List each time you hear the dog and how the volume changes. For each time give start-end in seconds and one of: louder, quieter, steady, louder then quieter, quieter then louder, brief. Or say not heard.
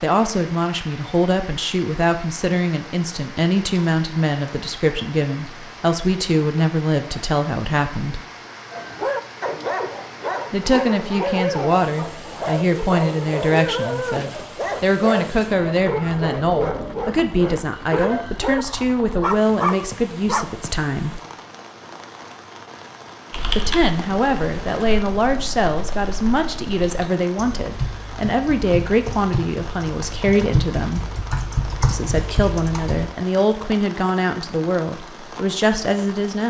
8.7-20.6 steady.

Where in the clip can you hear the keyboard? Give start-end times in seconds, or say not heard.
23.3-33.0.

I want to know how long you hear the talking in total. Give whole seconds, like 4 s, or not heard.
31 s.